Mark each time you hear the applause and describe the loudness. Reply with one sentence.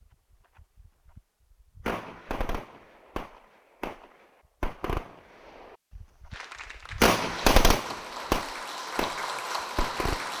The applause can be heard from 6.3 to 10.3 s, getting louder.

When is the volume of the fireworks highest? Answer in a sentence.
The loudest moment of the fireworks is at 8 seconds.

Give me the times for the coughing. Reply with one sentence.
You can't hear the coughing here.